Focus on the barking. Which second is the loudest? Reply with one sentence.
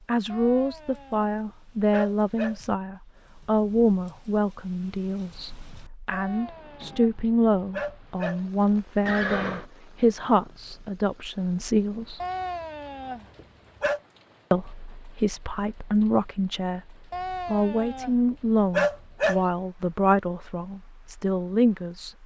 The loudest moment of the barking is at 19 seconds.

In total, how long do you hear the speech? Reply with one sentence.
You can hear the speech for 20 seconds altogether.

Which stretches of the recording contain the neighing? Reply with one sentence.
The neighing can be heard from 9.1 to 9.7 s.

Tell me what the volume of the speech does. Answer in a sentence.
The loudness of the speech stays about the same.